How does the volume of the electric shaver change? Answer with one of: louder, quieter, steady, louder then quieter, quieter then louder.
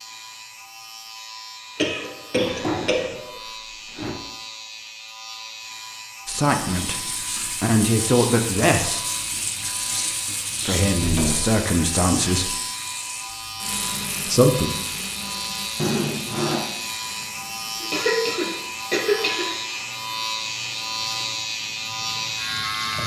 louder.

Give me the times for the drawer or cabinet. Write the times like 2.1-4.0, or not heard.
2.4-4.2, 10.9-11.6, 15.8-16.6.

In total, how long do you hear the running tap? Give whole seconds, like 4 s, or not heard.
17 s.